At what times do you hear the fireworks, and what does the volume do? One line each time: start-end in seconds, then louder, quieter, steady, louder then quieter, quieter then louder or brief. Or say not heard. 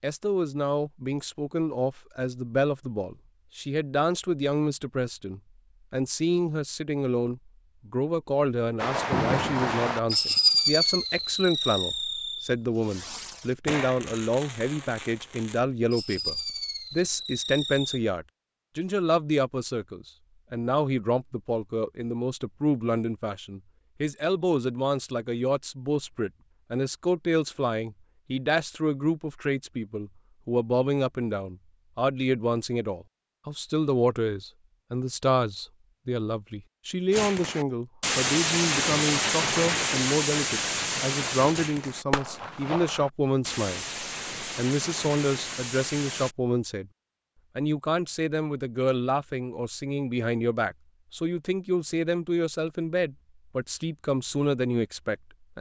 8.8-18.0 quieter then louder
37.1-46.4 quieter.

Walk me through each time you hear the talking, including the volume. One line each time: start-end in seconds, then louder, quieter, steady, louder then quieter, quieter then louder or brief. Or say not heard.
0.0-46.9 steady
47.5-55.5 steady.